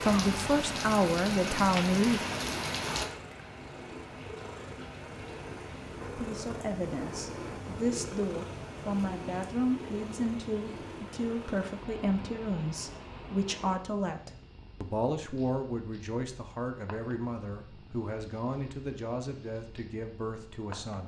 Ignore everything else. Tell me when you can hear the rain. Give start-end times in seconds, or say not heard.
0.0-13.8.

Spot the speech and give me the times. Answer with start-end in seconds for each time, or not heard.
0.1-2.2, 6.2-21.0.